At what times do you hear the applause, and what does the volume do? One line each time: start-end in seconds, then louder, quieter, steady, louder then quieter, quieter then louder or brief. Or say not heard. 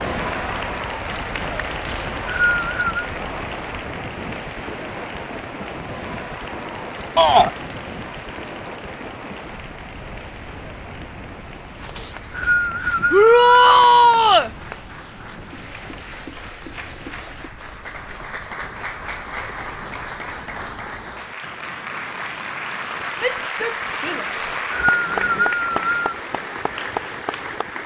0.0-27.8 quieter then louder.